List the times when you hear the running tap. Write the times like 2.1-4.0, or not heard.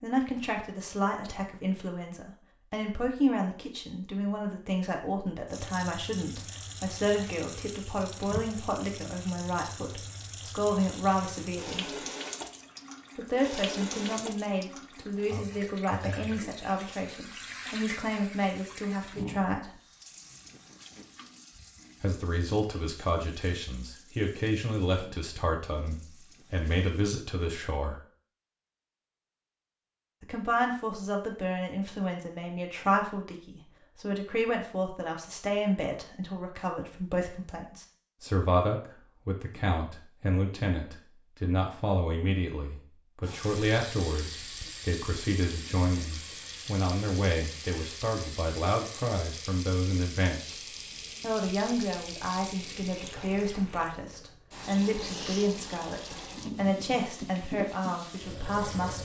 5.5-27.1, 43.2-58.9.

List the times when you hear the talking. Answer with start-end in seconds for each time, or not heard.
0.0-12.0, 13.2-19.8, 22.0-28.0, 30.2-50.6, 51.2-58.9.